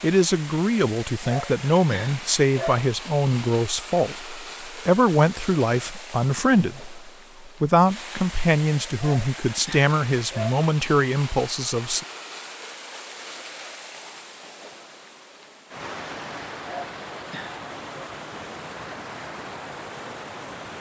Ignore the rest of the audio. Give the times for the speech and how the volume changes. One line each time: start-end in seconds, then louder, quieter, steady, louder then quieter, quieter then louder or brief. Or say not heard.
0.0-12.1 steady.